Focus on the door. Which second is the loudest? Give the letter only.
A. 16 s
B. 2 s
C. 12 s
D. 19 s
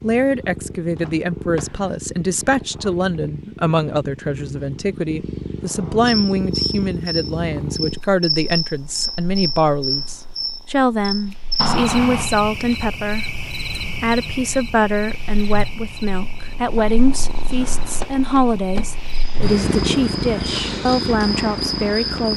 C.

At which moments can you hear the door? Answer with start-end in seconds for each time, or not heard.
0.9-1.9, 11.6-12.3, 17.9-19.4.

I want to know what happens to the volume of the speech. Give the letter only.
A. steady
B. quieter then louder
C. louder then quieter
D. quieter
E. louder
A.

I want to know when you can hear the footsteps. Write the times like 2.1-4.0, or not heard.
not heard.